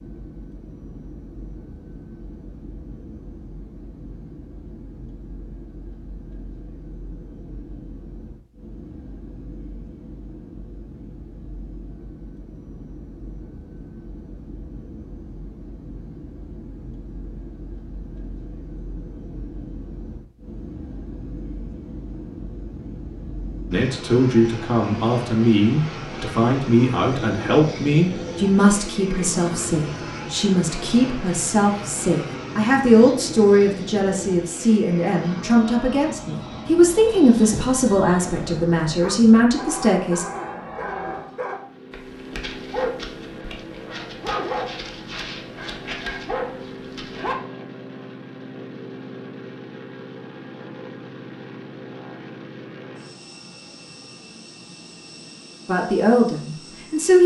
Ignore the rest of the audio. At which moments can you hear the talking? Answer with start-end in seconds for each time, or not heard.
23.7-40.2, 55.6-57.2.